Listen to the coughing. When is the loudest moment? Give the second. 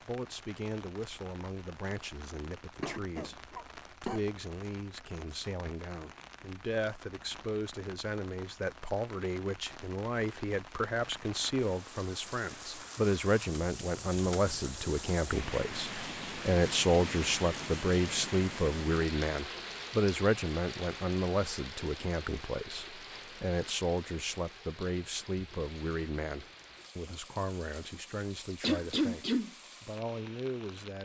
29 s.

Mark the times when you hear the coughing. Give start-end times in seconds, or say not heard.
2.8-4.2, 28.6-29.5.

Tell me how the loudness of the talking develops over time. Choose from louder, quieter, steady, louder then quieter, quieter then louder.
louder then quieter.